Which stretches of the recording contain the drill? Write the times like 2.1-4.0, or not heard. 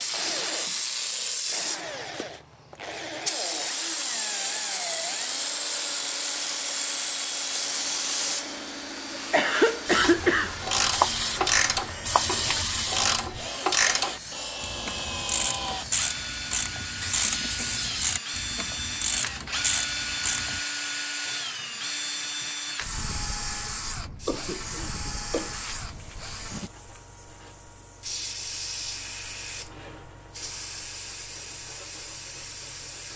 0.0-26.7.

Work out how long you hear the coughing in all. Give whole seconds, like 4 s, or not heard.
3 s.